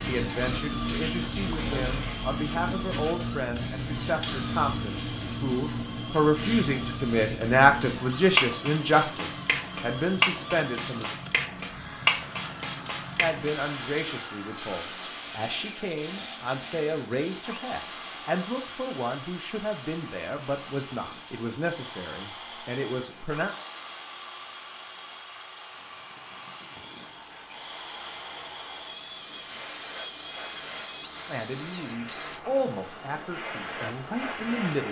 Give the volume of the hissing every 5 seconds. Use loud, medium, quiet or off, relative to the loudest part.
loud, loud, loud, medium, quiet, quiet, medium.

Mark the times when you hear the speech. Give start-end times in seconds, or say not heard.
0.0-11.2, 13.2-23.6, 31.2-34.8.